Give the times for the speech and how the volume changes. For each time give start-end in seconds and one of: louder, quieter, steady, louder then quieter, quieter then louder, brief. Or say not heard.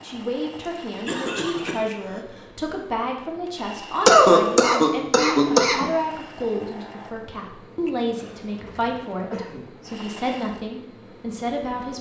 0.0-11.9 steady.